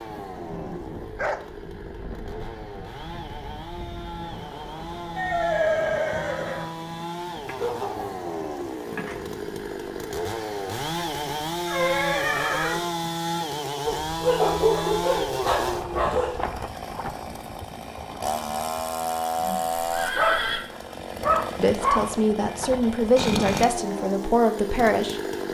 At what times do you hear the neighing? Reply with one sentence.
You can hear the neighing from 5.2 to 6.7 s, from 11.7 to 12.8 s and from 19.8 to 20.6 s.